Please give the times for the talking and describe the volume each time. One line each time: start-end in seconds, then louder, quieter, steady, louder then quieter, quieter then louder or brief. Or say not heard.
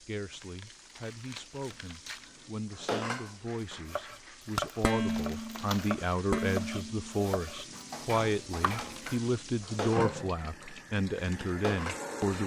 0.0-12.4 louder.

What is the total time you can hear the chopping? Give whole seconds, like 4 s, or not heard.
5 s.